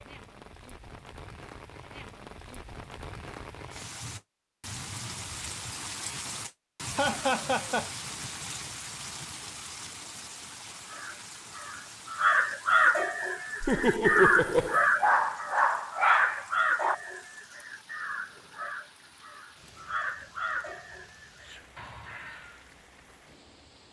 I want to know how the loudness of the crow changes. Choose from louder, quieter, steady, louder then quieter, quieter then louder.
quieter.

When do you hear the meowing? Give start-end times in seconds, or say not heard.
not heard.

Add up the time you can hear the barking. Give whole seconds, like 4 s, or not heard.
2 s.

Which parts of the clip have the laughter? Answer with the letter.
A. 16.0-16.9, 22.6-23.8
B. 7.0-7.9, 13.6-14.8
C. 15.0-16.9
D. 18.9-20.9
B.